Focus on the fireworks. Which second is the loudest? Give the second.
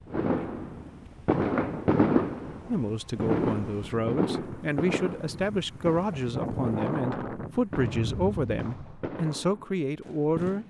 2 s.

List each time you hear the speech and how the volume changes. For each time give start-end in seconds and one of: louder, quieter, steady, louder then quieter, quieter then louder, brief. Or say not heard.
2.6-10.6 steady.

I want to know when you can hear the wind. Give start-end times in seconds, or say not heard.
0.0-9.1.